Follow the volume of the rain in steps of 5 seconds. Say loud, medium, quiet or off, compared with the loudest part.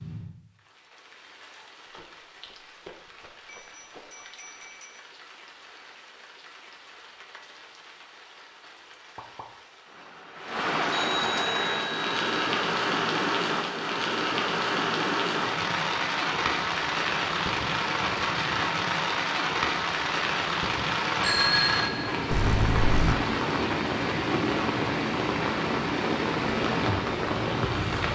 quiet, quiet, loud, loud, loud, loud.